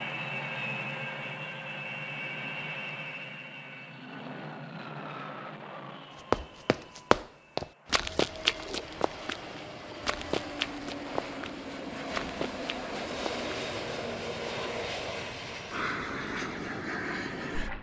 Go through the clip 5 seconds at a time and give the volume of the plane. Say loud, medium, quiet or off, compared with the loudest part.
loud, medium, loud, loud.